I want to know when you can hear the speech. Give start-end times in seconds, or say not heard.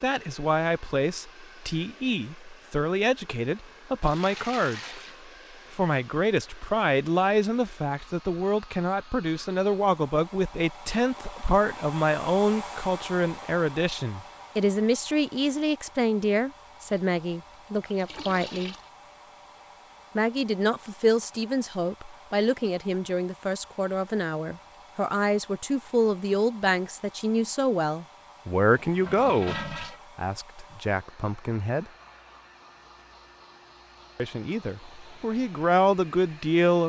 0.0-5.0, 5.7-18.8, 20.1-31.9, 34.1-36.8.